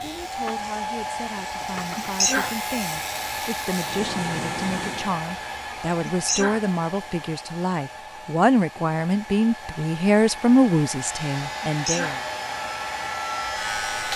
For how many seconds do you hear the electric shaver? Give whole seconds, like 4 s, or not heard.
8 s.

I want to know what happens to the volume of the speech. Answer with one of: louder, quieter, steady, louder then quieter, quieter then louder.
louder.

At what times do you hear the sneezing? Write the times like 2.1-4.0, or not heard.
1.9-2.5, 6.0-6.6, 11.6-12.2.